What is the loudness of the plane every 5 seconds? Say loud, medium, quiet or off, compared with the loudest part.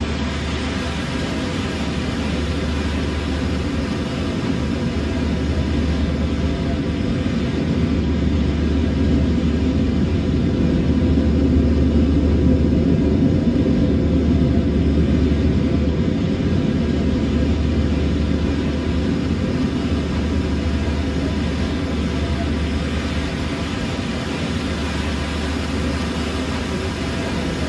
medium, loud, loud, loud, medium, medium.